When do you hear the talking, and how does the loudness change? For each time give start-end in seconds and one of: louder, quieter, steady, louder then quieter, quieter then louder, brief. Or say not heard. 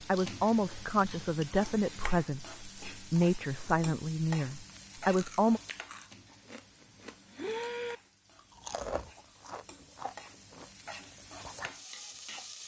0.1-5.6 steady.